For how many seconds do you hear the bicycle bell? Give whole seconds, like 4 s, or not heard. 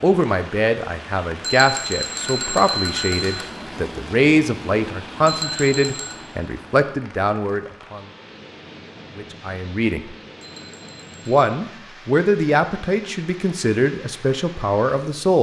4 s.